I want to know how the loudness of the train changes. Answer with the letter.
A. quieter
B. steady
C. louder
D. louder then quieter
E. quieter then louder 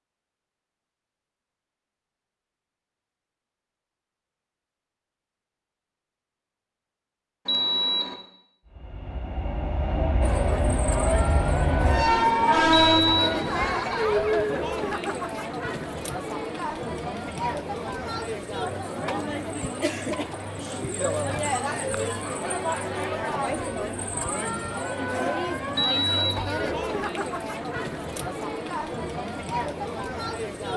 C.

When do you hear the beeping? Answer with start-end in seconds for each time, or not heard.
7.5-8.2, 12.7-13.4, 25.8-26.4.